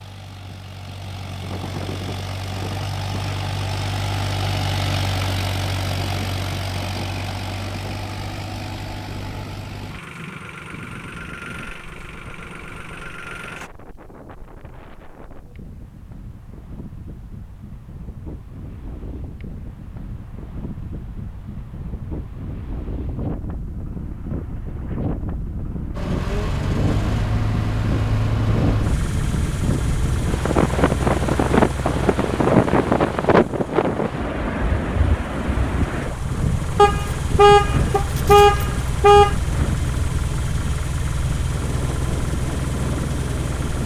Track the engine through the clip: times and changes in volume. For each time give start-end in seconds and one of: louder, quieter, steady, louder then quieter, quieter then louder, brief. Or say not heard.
0.0-13.7 louder then quieter
25.9-43.8 quieter then louder.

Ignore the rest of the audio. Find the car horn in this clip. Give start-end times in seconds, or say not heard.
36.8-39.4.